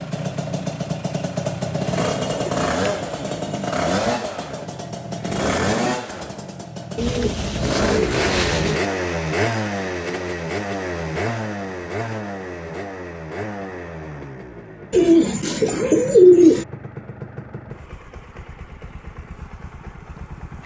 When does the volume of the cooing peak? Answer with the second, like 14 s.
16 s.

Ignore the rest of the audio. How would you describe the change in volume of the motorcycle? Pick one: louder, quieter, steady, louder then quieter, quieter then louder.
quieter.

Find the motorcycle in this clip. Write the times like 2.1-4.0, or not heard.
0.0-20.6.